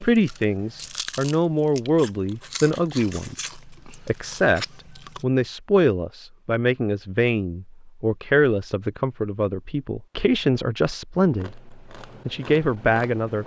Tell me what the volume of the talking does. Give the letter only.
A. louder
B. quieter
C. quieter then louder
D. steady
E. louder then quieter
D.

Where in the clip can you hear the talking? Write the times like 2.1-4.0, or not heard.
0.0-13.4.